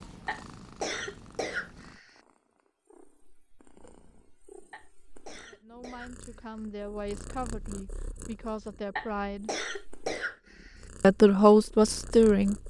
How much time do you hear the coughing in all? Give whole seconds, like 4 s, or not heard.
6 s.